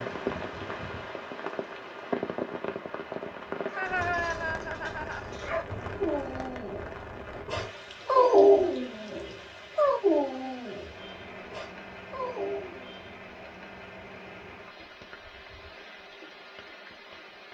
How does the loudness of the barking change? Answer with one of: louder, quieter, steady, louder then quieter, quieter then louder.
louder then quieter.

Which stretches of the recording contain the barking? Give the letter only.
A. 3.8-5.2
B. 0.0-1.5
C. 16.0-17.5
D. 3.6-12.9
D.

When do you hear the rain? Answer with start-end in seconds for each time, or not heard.
0.0-17.5.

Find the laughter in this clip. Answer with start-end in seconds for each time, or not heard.
3.8-5.2.